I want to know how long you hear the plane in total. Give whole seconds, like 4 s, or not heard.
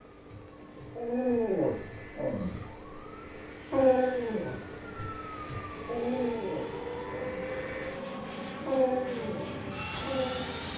11 s.